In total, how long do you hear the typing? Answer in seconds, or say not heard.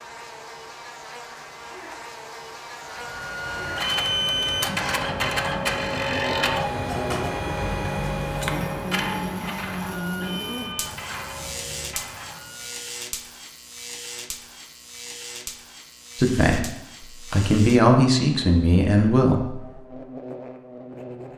not heard.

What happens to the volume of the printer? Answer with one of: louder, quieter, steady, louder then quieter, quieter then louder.
quieter.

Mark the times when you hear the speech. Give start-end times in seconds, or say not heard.
16.1-19.8.